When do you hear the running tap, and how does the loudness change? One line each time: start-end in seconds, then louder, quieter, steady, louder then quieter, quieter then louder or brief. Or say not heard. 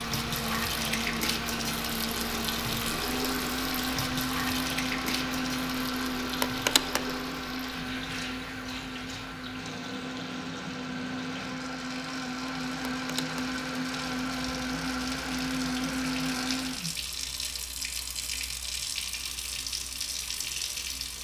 0.0-21.1 quieter then louder.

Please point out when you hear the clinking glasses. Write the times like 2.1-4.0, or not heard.
not heard.